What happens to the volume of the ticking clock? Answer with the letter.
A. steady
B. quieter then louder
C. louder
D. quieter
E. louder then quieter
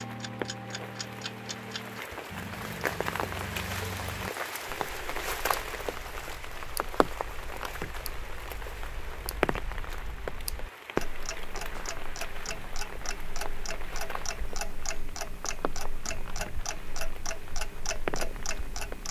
B.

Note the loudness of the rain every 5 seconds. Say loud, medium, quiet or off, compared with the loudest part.
loud, loud, loud, medium.